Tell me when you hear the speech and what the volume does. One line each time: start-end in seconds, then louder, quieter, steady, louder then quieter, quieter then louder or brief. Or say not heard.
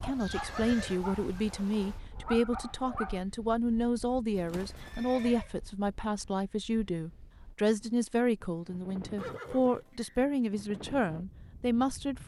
0.0-12.2 steady.